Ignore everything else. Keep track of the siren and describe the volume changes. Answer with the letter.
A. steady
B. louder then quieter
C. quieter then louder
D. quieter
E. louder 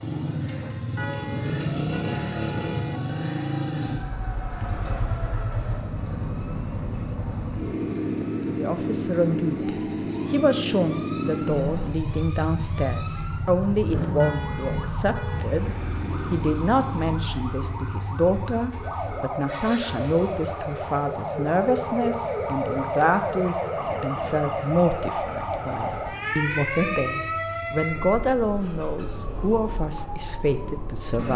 E.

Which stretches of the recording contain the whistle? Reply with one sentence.
You can't hear the whistle here.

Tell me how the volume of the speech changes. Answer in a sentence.
The loudness of the speech stays about the same.